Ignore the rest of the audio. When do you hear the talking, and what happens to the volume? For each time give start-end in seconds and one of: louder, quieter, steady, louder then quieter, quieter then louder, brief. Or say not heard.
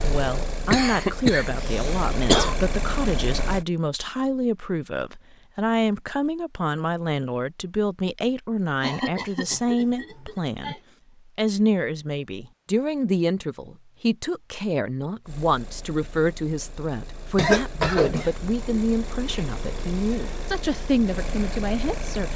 0.0-10.8 steady
11.3-22.3 steady.